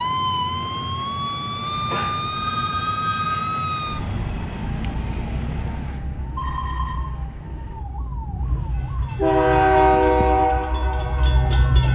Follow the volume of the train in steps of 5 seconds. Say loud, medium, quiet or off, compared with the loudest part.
quiet, loud, loud.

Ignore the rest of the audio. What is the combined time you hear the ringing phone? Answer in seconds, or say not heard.
2 s.